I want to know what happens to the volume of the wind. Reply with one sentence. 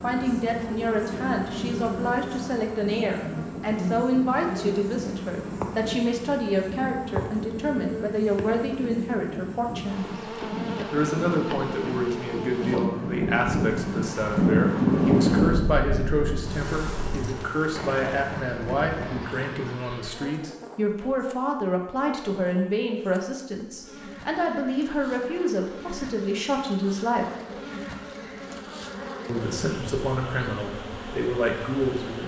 The volume of the wind goes up, then down.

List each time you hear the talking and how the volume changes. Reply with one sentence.
The talking can be heard from 0.0 to 10.1 s, at a steady volume; from 10.9 to 27.3 s, at a steady volume; and briefly from 29.2 to 32.2 s.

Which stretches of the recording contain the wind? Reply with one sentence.
The wind can be heard from 0.0 to 19.8 s.